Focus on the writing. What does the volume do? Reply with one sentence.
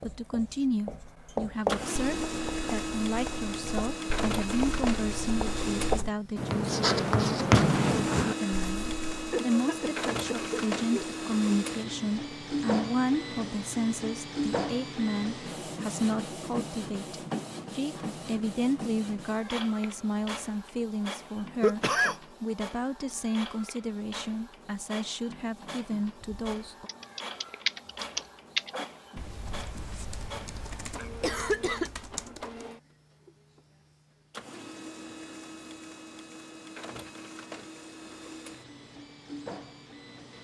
The loudness of the writing goes down, then up.